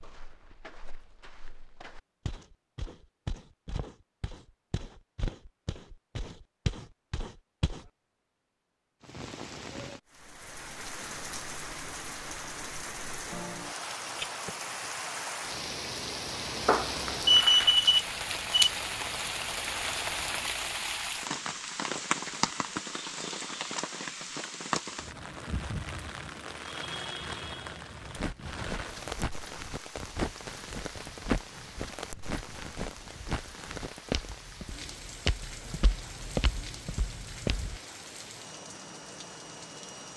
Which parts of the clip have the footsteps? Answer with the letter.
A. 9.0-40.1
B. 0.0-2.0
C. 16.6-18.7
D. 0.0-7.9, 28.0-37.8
D.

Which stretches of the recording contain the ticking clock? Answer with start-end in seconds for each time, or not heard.
not heard.